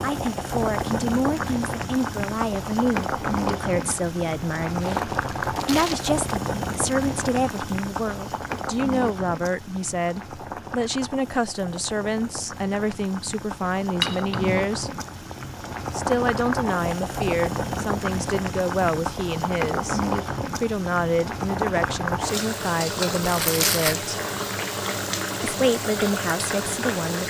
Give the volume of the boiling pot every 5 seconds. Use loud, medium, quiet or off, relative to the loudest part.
loud, loud, medium, loud, loud, loud.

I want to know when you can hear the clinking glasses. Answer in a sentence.
You can hear the clinking glasses from 14.0 to 14.7 s.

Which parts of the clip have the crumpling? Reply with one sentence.
The crumpling can be heard from 4.8 to 6.2 s and from 23.2 to 24.0 s.